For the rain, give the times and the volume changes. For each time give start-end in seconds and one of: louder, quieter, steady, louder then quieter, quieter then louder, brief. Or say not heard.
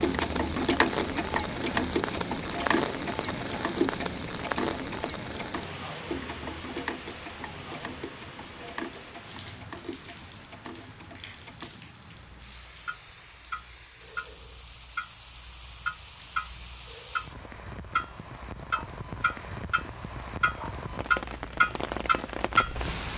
0.0-23.1 quieter then louder.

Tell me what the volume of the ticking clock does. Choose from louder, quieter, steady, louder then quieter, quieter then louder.
quieter then louder.